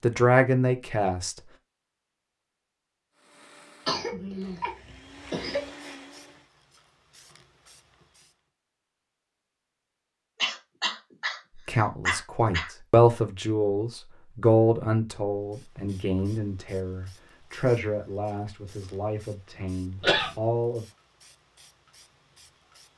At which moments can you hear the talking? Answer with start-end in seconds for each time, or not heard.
0.0-1.4, 11.7-20.9.